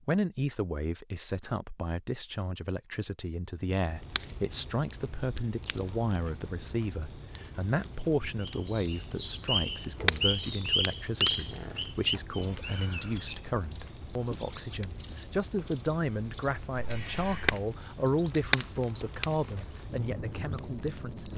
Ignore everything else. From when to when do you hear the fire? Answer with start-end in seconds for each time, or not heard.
3.6-21.3.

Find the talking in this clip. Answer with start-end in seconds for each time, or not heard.
0.1-21.3.